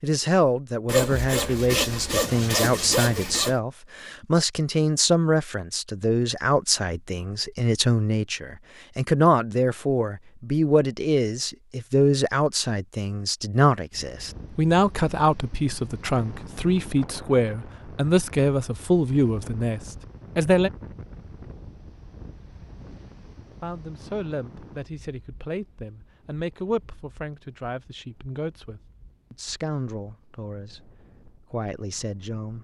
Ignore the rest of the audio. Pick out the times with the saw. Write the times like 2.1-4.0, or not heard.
0.8-3.5.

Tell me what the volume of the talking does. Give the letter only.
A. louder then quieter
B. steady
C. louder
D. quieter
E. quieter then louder
D.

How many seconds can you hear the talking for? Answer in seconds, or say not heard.
30 s.